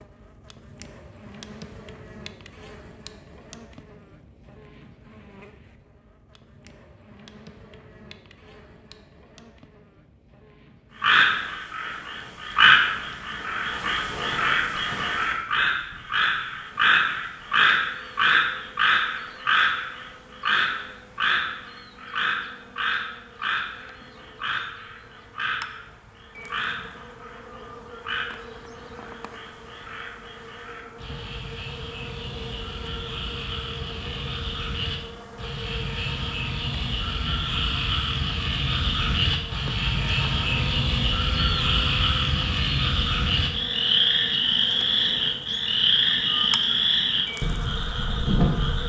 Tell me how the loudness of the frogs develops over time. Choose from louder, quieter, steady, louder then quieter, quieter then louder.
quieter then louder.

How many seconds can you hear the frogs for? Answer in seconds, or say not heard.
38 s.